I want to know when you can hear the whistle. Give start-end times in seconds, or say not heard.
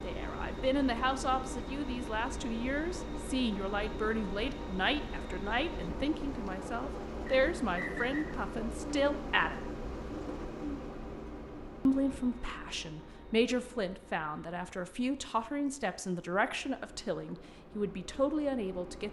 7.2-8.3.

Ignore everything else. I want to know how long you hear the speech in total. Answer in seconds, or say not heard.
17 s.